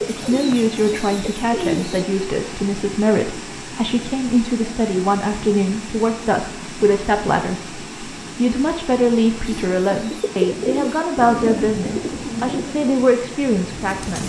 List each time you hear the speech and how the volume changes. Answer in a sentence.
The speech can be heard from 0.1 to 14.2 s, at a steady volume.